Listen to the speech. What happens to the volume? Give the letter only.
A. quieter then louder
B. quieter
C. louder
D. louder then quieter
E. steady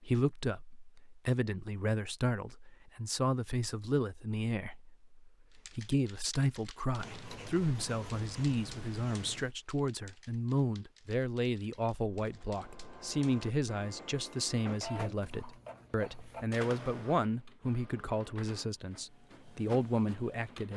E.